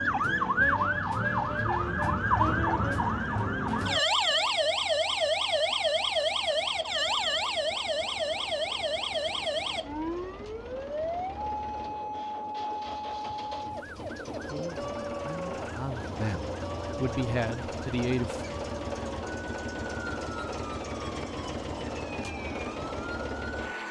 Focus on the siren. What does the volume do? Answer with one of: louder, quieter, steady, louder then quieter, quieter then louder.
quieter.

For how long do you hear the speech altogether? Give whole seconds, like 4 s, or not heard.
4 s.